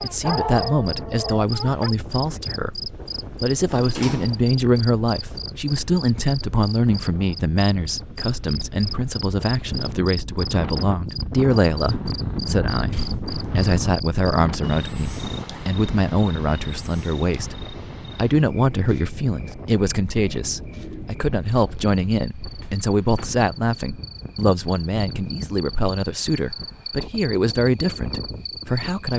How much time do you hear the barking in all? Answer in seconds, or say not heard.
2 s.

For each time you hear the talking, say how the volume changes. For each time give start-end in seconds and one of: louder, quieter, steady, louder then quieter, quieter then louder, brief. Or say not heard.
0.0-29.1 steady.